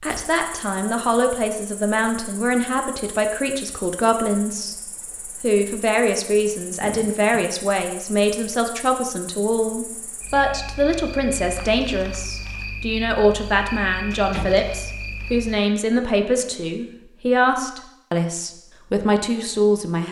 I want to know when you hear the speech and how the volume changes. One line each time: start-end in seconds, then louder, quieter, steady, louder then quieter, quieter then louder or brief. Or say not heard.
0.0-4.8 steady
5.4-20.0 steady.